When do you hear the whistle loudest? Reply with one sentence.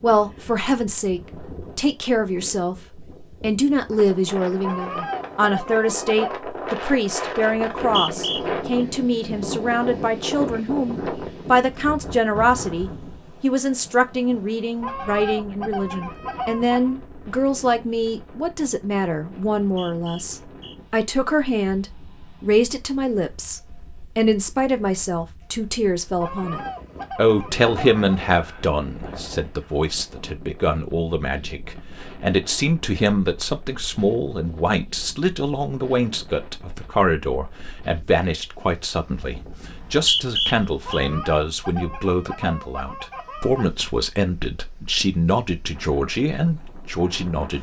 The volume of the whistle peaks at 40 seconds.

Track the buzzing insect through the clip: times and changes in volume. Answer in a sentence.
The buzzing insect can't be heard in this clip.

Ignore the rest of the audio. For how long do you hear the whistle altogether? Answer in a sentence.
You can hear the whistle for 4 seconds altogether.